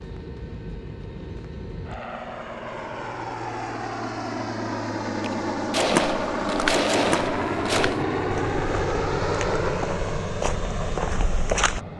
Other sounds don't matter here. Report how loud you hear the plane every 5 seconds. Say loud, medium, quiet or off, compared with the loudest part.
medium, loud, medium.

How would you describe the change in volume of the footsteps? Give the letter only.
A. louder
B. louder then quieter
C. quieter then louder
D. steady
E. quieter
C.